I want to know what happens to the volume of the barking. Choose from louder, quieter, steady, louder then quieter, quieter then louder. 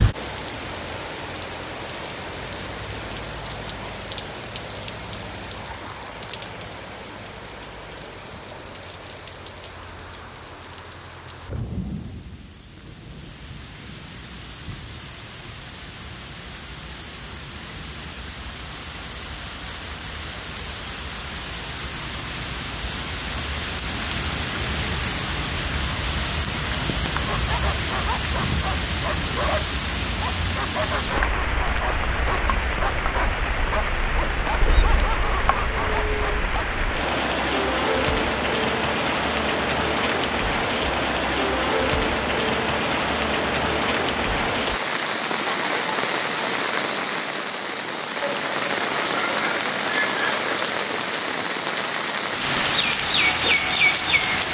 steady.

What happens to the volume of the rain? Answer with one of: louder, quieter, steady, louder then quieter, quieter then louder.
louder.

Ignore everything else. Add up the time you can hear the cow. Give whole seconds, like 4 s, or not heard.
not heard.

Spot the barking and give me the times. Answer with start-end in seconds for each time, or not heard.
27.2-36.9.